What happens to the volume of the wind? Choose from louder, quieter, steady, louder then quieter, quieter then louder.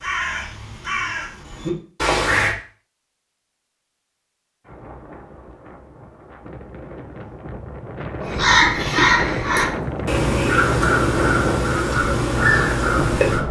louder.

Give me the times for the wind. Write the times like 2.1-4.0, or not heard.
4.7-13.4.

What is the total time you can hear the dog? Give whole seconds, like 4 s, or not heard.
not heard.